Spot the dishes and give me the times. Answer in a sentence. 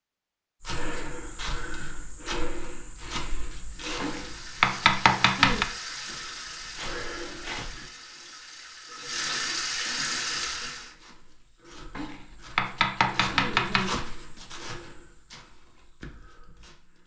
The dishes can't be heard in this clip.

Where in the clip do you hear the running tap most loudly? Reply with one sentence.
The loudest moment of the running tap is at 10 seconds.